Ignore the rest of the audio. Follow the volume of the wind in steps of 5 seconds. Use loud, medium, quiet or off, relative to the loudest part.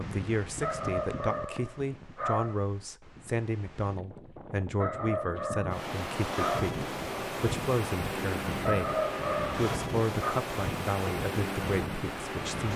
medium, loud, loud.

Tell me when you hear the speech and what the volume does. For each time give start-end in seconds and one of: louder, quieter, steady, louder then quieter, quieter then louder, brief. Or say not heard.
0.0-12.7 steady.